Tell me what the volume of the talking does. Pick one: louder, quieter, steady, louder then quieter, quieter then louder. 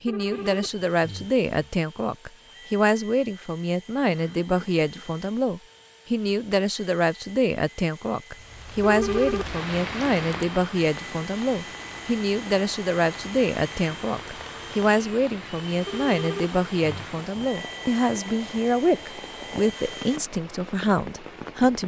steady.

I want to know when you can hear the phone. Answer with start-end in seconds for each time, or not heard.
0.1-1.7, 8.8-9.6, 15.8-17.5.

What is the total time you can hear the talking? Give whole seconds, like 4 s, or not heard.
22 s.